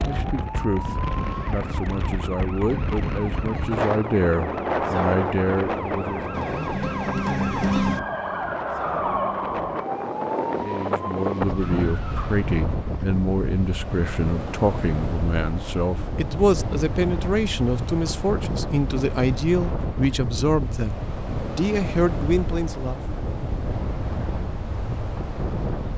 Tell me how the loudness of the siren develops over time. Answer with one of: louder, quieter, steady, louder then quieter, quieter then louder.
louder then quieter.